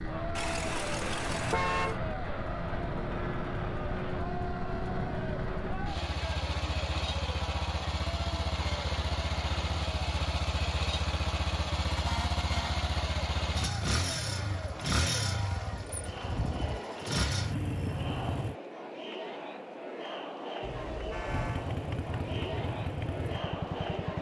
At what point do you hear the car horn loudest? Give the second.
2 s.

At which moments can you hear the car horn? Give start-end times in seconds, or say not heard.
0.3-2.0, 11.9-12.8, 20.6-21.7.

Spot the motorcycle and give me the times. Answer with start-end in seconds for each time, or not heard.
0.0-18.6, 21.2-24.1.